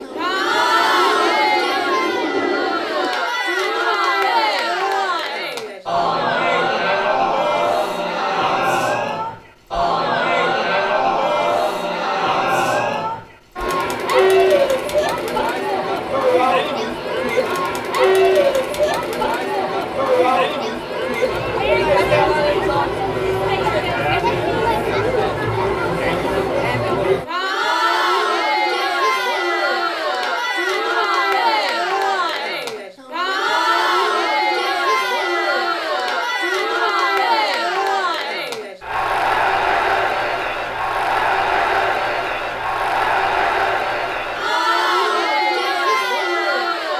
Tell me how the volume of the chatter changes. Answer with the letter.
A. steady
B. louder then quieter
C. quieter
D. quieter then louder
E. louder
A.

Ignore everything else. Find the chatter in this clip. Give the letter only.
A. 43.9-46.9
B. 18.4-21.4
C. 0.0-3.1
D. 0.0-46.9
D.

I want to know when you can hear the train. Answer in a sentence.
The train can be heard from 0.0 to 3.1 s.